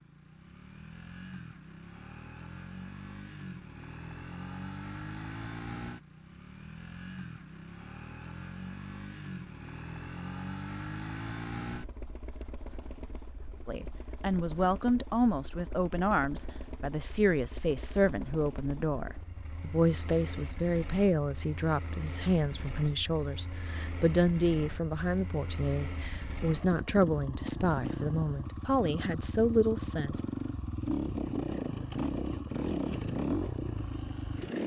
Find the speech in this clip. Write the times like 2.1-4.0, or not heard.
13.7-30.2.